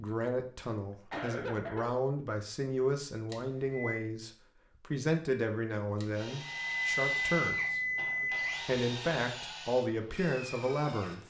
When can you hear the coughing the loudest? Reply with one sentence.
The loudest moment of the coughing is at 1 second.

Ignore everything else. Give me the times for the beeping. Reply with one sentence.
The beeping can be heard from 3.3 to 4.0 s and from 6.0 to 8.7 s.